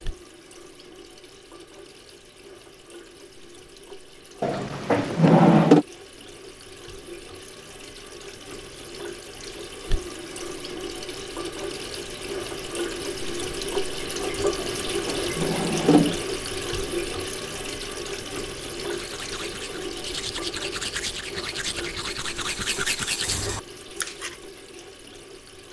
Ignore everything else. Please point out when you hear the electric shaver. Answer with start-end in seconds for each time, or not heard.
not heard.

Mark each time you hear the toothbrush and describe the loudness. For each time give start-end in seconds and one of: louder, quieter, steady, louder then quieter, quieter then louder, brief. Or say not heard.
18.8-24.4 louder.